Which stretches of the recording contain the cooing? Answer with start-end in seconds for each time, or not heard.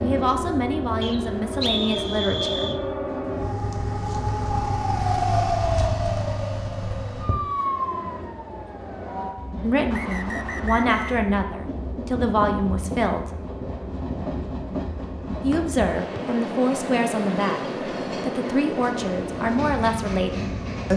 not heard.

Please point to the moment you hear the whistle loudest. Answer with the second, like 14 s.
2 s.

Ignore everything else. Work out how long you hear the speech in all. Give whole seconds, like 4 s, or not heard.
12 s.